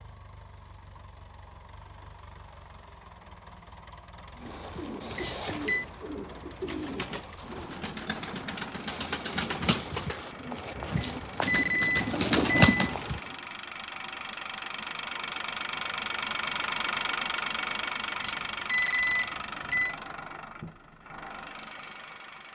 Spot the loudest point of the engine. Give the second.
17 s.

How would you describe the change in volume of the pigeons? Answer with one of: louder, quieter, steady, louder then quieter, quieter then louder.
louder.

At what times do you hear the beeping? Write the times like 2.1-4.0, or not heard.
5.2-5.8, 10.9-12.9, 18.1-19.9.